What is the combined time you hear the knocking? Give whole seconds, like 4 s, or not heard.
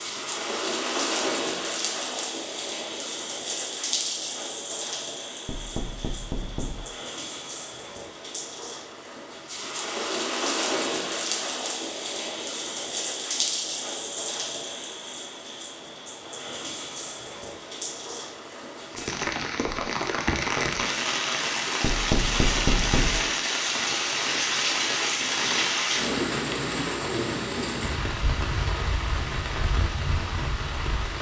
3 s.